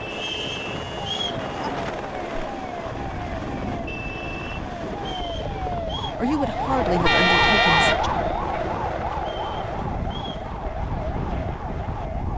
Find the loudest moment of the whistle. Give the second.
1 s.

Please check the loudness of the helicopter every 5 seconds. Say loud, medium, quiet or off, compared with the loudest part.
loud, loud, medium.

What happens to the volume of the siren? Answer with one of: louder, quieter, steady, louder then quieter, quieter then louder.
louder then quieter.